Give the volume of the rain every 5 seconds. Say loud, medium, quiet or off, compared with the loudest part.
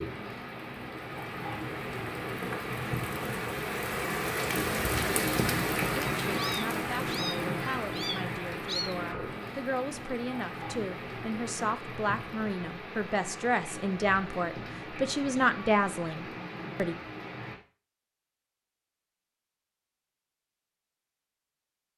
loud, loud, medium, medium, off.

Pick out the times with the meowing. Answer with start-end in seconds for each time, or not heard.
6.2-8.9.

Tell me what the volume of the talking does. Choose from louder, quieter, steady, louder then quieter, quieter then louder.
louder.